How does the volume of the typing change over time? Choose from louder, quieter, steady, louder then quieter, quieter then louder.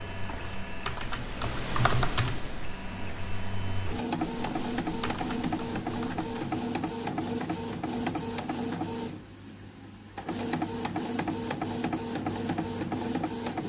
louder then quieter.